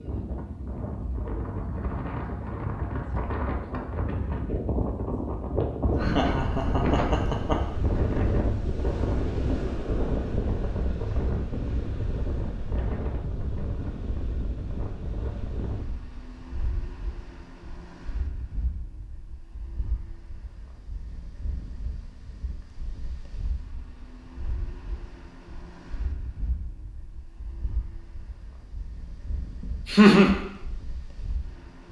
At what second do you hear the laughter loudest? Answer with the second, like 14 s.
30 s.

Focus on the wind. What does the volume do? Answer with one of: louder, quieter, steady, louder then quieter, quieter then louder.
quieter.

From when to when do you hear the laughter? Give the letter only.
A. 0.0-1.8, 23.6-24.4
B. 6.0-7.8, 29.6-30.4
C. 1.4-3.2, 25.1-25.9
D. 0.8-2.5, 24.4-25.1
B.